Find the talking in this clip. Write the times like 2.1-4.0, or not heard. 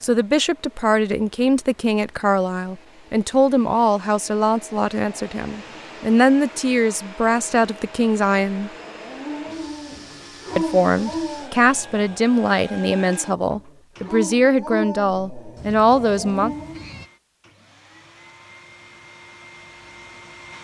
0.0-8.7, 10.6-16.6.